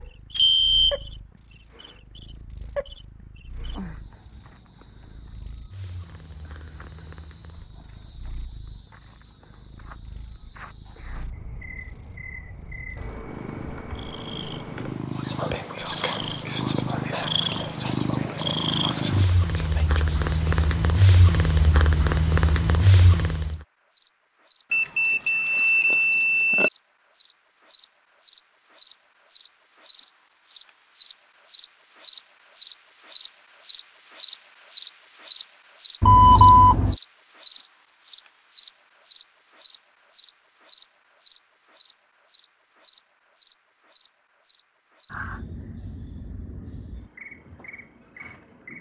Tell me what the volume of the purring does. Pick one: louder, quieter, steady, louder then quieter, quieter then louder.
louder.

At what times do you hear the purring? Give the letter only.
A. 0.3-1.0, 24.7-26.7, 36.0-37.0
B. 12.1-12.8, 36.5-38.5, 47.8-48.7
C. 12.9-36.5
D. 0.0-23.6
D.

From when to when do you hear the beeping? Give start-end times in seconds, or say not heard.
0.3-1.0, 24.7-26.7, 36.0-37.0.